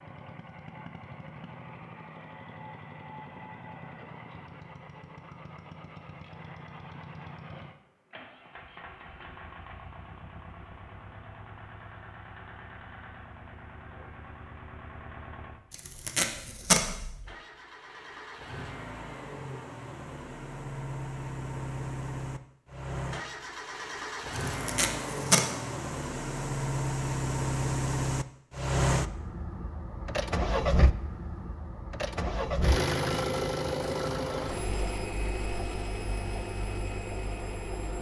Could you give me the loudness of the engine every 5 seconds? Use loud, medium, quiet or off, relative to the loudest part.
quiet, quiet, quiet, quiet, medium, loud, loud, medium.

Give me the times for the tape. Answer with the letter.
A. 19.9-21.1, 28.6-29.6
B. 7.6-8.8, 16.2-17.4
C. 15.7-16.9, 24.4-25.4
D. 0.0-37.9
C.